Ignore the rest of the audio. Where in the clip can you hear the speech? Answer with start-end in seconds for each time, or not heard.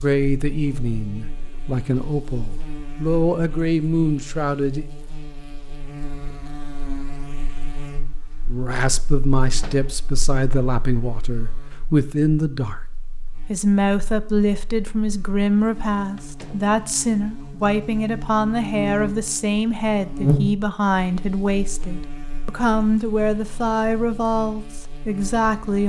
0.0-4.8, 8.4-12.8, 13.4-25.8.